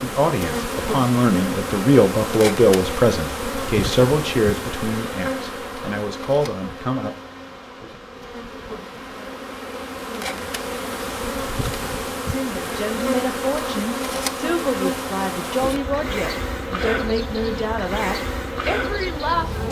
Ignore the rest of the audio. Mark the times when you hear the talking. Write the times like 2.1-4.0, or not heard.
0.0-7.1, 12.2-19.6.